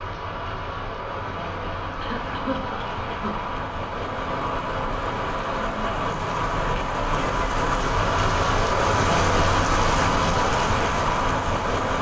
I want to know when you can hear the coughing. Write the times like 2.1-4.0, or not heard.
1.9-3.4.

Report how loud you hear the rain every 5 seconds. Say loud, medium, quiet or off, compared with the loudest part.
medium, loud, loud.